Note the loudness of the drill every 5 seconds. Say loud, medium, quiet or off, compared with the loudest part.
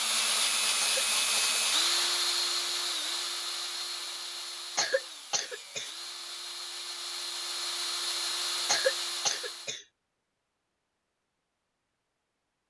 loud, medium, off.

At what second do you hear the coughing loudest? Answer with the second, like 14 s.
9 s.